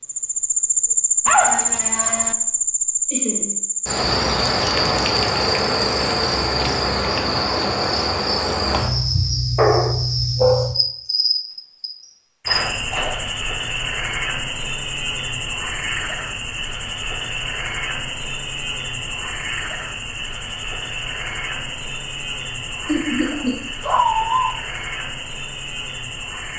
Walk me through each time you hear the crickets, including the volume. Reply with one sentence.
You can hear the crickets from 0.0 to 26.5 s, getting quieter.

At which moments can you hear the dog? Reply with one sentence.
The dog can be heard from 1.2 to 2.4 s, from 9.6 to 10.7 s and from 23.4 to 24.6 s.